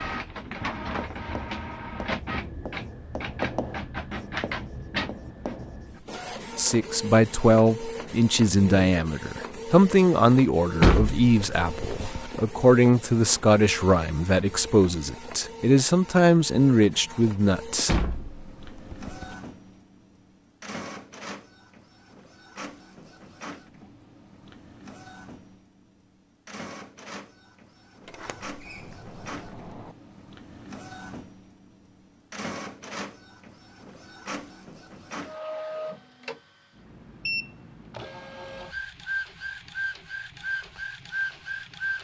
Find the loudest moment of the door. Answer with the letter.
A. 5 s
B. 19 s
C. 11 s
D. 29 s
C.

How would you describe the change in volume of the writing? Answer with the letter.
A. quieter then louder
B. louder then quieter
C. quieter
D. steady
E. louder
B.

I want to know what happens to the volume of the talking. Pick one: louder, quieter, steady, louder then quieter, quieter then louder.
steady.